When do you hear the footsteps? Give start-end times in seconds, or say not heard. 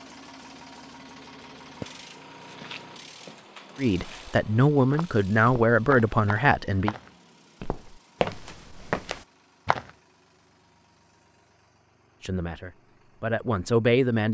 1.6-9.9.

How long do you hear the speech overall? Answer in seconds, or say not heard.
5 s.